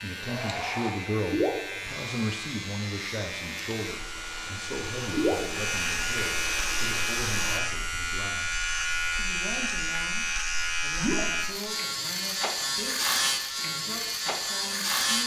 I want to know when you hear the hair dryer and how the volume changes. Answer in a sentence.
The hair dryer can be heard from 0.1 to 7.6 s, getting quieter then louder.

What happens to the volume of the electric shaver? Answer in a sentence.
The loudness of the electric shaver goes up.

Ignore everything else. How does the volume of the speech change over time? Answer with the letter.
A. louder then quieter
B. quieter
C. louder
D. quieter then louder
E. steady
B.